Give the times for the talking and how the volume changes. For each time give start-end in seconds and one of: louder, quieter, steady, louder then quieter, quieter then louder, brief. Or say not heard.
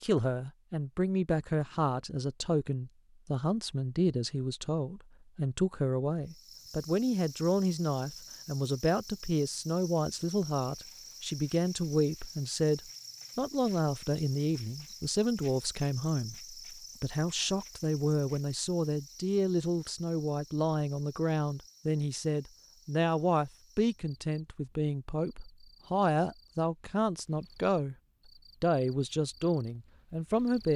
0.0-27.9 steady
28.6-30.7 brief.